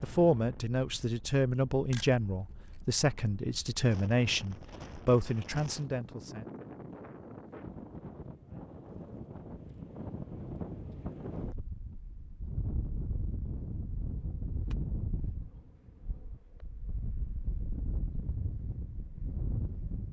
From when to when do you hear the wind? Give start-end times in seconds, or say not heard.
0.0-20.0.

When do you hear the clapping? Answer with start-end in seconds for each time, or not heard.
not heard.